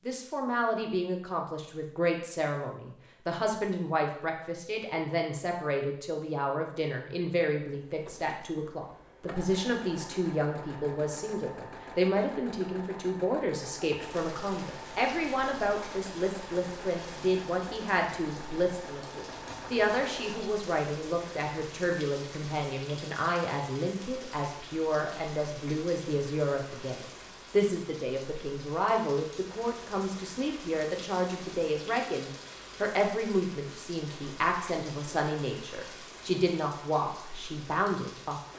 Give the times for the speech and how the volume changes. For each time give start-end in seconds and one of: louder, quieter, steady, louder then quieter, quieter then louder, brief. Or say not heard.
0.1-38.4 steady.